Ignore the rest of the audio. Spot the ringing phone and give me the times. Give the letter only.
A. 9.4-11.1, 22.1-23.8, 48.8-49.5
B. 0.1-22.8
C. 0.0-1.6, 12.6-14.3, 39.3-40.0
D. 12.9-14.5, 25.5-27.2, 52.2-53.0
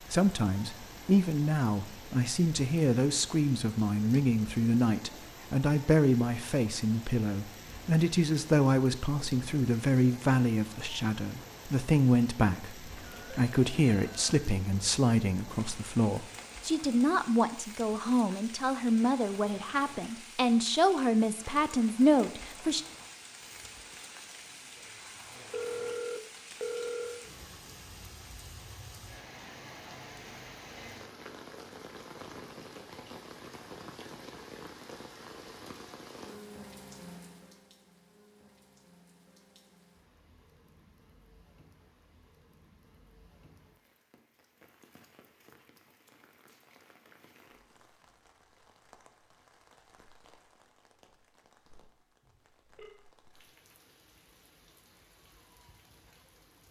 D.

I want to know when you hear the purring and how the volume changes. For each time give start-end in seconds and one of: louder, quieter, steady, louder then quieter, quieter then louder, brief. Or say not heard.
not heard.